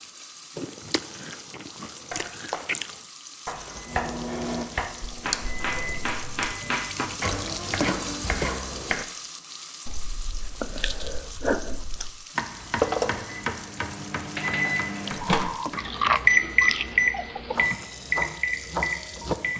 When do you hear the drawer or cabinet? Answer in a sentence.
You can hear the drawer or cabinet from 12.8 to 13.4 s.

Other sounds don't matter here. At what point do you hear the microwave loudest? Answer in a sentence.
The volume of the microwave peaks at 17 seconds.